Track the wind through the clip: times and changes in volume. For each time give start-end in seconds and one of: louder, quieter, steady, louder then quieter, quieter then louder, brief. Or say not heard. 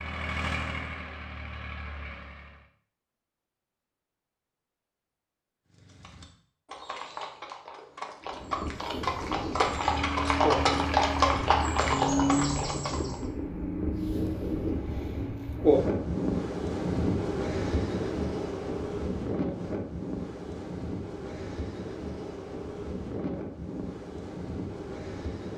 8.2-25.5 louder then quieter.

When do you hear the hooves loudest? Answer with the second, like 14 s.
11 s.